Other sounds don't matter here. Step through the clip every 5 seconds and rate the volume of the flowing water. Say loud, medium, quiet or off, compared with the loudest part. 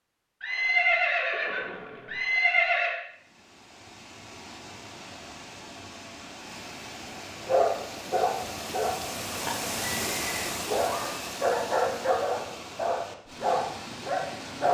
medium, loud, loud.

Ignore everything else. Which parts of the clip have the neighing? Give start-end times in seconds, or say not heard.
0.4-3.0, 9.4-10.5.